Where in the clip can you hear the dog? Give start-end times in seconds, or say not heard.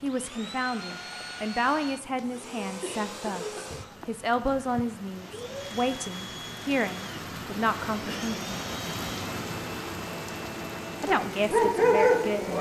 11.1-12.5.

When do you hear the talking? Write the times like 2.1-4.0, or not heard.
0.0-8.5, 11.0-12.5.